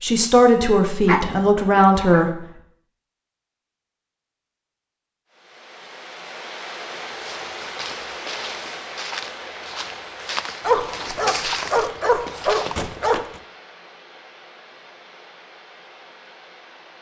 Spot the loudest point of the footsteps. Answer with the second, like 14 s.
11 s.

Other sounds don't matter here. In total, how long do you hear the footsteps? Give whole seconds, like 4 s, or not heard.
6 s.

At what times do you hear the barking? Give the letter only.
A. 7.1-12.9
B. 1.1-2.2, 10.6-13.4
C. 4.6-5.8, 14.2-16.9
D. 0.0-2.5
B.